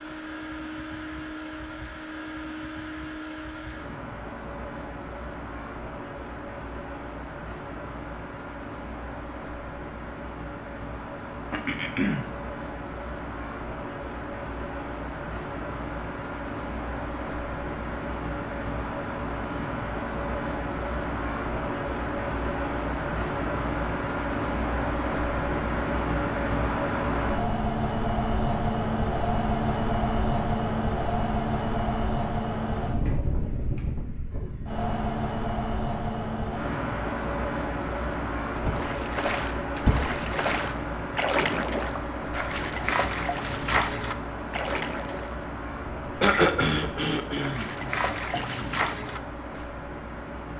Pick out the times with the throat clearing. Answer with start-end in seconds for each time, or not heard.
11.5-12.3, 46.2-48.8.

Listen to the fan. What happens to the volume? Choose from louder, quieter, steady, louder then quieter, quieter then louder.
louder then quieter.